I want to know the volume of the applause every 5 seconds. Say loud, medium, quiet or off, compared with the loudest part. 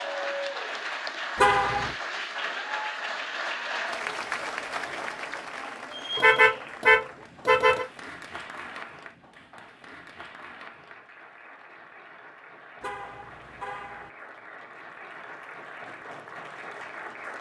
loud, medium, quiet, medium.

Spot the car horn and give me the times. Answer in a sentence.
The car horn can be heard from 1.4 to 1.9 s, from 6.2 to 7.8 s and from 12.8 to 14.1 s.